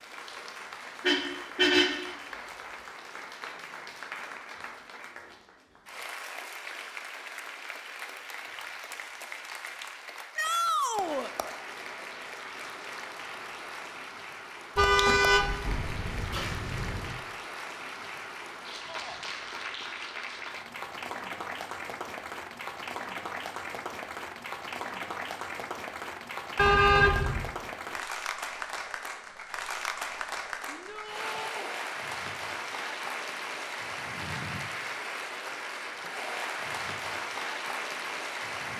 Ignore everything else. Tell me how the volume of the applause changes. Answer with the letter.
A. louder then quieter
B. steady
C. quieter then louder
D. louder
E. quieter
D.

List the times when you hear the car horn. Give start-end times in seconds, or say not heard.
1.0-2.1, 14.8-17.1, 26.6-27.5.